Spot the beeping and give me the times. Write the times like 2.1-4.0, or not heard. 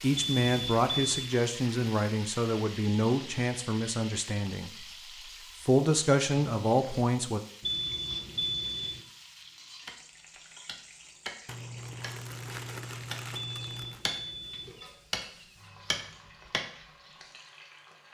0.1-1.4, 7.6-9.0, 13.3-14.8.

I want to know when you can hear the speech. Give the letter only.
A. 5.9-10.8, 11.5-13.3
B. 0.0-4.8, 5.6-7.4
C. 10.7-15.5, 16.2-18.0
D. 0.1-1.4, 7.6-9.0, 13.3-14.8
B.